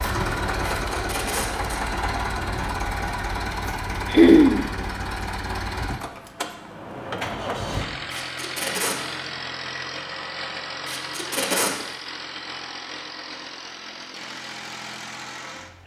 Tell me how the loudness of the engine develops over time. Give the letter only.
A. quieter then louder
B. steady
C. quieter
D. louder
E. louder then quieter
C.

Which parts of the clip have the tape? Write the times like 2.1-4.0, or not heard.
0.7-1.8, 8.1-9.0, 10.8-11.8.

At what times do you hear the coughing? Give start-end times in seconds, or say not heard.
4.0-4.7, 11.3-11.8.